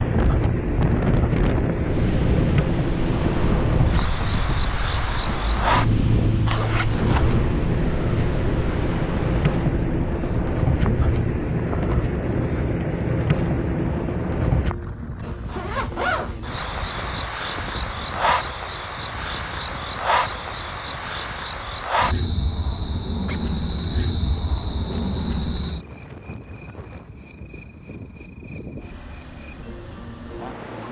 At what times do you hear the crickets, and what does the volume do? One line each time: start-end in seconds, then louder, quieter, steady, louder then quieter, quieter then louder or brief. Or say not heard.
0.0-30.8 quieter.